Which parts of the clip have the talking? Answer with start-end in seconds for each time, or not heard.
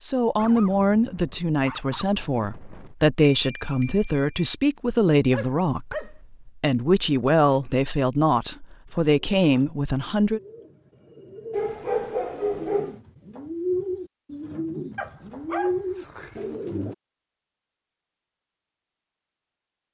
0.0-10.4.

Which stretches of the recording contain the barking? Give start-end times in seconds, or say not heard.
0.3-3.0, 5.3-6.2, 11.5-12.9, 14.9-16.6.